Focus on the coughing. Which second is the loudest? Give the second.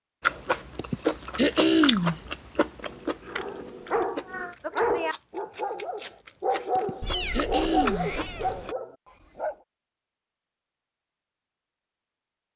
2 s.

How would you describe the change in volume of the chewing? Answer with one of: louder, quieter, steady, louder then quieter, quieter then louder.
quieter then louder.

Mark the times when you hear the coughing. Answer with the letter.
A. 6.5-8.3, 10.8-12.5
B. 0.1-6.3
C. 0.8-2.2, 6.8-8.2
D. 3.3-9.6
C.